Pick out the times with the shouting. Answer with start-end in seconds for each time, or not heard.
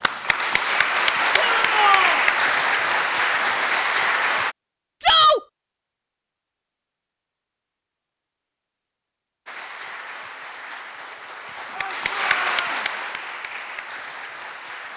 1.4-2.2, 5.0-5.4, 11.7-12.8.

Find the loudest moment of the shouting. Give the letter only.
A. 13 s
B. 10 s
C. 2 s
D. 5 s
D.